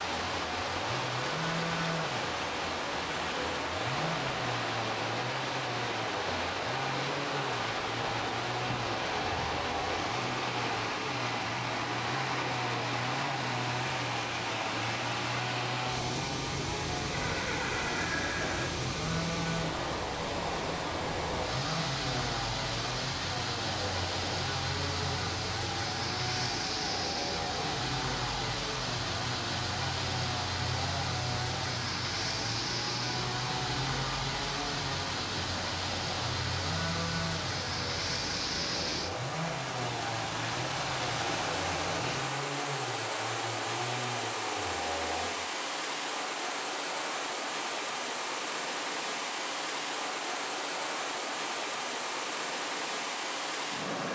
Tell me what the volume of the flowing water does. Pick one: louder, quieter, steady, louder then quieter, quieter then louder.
steady.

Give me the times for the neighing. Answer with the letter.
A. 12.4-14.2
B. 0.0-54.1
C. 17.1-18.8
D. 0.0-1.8
C.